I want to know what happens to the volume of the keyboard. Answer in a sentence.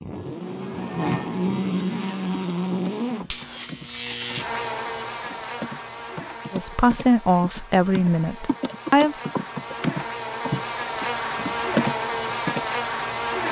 The volume of the keyboard goes up.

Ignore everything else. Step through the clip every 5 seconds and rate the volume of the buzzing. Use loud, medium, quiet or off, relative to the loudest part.
loud, medium, loud.